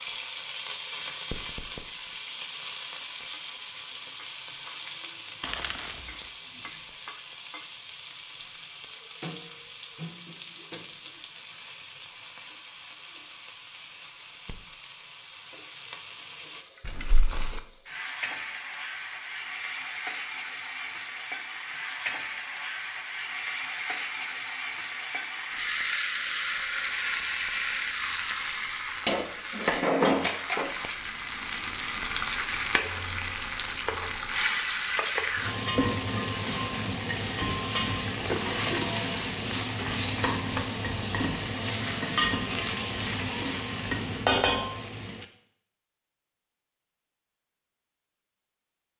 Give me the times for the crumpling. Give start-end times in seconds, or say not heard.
5.4-6.0, 16.8-17.6, 38.1-40.1.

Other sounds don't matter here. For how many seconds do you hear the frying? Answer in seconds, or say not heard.
45 s.